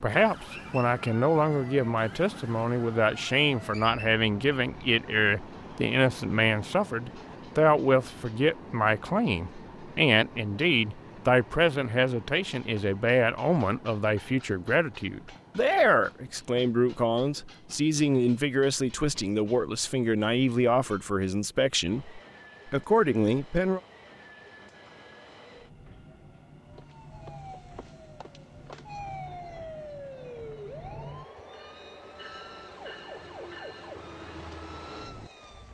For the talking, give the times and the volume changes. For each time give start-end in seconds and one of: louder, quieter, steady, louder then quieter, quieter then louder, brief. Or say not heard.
0.0-23.8 steady.